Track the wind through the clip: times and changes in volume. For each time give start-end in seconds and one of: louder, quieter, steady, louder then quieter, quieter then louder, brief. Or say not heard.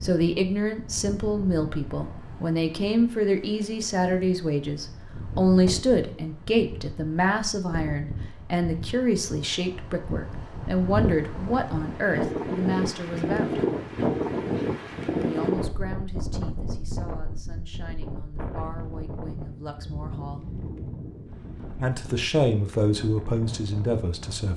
0.0-24.5 louder then quieter.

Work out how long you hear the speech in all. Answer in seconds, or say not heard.
22 s.